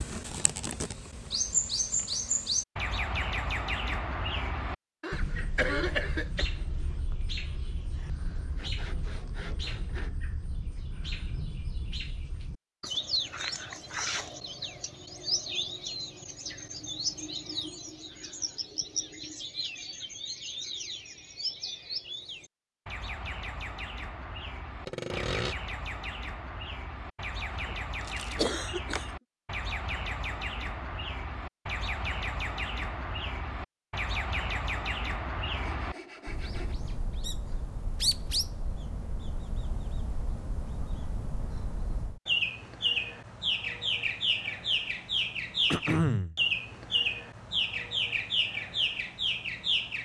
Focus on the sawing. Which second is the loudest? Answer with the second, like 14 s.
25 s.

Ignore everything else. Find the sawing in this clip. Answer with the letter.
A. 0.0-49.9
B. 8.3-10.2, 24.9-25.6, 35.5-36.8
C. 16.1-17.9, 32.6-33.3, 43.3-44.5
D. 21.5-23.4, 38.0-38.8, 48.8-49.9
B.